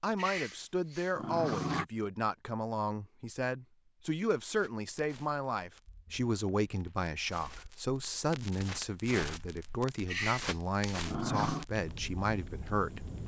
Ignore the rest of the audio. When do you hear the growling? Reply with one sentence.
The growling can be heard from 0.1 to 1.9 s and from 10.1 to 11.7 s.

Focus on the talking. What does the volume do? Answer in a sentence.
The loudness of the talking stays about the same.